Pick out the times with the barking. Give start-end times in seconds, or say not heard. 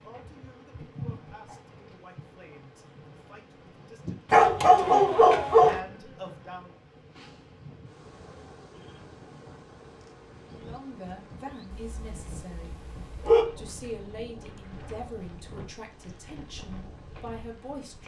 4.3-5.8, 11.7-13.4.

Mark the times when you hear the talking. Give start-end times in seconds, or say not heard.
0.0-6.7, 10.4-12.8, 13.6-18.0.